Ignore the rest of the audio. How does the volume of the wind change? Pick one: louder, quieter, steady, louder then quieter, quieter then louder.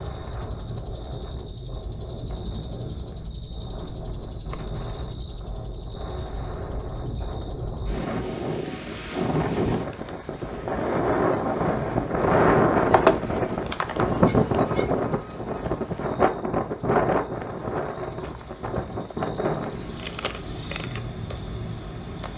louder then quieter.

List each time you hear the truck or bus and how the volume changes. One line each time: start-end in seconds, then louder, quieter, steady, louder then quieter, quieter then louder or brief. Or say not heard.
not heard.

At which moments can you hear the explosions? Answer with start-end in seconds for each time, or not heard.
not heard.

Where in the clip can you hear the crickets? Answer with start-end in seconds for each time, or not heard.
0.0-22.3.